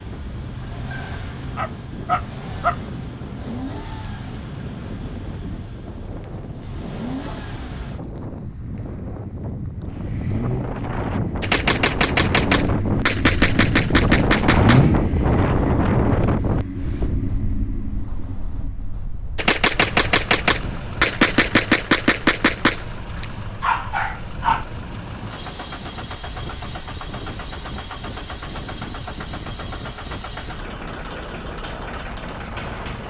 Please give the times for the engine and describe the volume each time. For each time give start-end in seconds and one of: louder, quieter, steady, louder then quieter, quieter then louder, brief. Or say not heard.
0.0-33.0 louder then quieter.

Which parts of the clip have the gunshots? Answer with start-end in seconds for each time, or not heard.
11.4-14.8, 19.4-23.2.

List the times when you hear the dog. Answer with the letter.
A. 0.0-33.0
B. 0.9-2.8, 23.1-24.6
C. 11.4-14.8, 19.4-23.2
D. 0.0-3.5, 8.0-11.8
B.